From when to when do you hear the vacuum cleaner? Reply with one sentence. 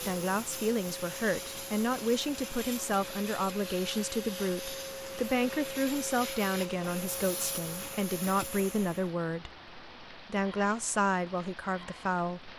The vacuum cleaner can be heard from 0.0 to 9.1 s.